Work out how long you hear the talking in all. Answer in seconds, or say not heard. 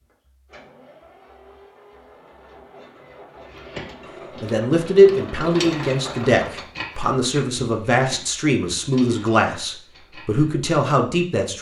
7 s.